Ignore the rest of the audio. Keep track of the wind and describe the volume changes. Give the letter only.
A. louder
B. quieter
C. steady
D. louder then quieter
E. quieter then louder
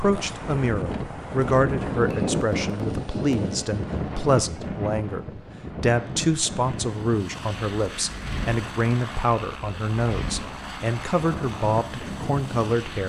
B.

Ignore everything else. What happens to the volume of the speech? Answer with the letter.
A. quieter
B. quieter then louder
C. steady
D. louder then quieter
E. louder
C.